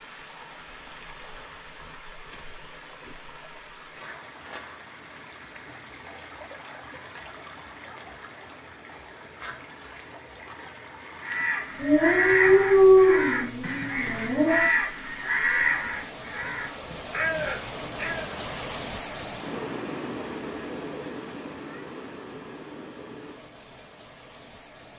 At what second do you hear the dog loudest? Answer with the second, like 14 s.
13 s.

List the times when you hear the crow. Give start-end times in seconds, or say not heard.
11.2-18.4.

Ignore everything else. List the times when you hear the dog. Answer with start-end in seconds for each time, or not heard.
11.8-14.7.